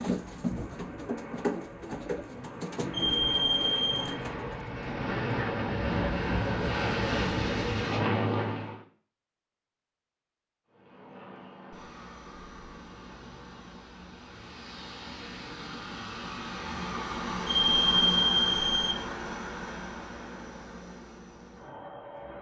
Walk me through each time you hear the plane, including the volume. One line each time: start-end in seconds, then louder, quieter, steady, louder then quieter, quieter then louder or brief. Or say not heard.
0.0-8.8 louder
10.7-22.3 louder then quieter.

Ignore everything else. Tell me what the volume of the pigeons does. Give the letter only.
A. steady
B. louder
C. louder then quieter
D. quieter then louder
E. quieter
E.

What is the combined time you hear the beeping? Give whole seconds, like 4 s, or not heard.
3 s.